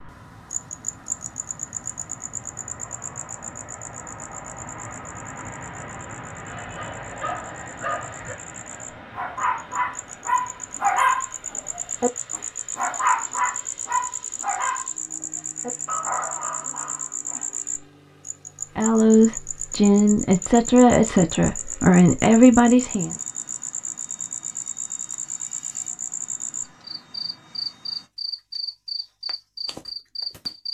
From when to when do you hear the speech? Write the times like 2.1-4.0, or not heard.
18.8-23.1.